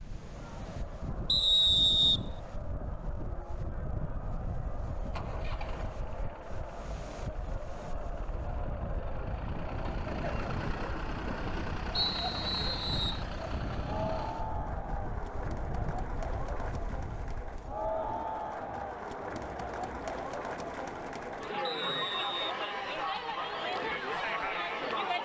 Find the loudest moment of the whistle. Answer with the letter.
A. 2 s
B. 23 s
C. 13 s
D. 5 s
A.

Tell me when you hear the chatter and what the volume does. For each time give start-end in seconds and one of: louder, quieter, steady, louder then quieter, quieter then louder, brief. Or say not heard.
0.0-25.2 louder.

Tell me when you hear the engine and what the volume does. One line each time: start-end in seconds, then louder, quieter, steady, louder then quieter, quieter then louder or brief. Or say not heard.
4.2-14.5 quieter then louder.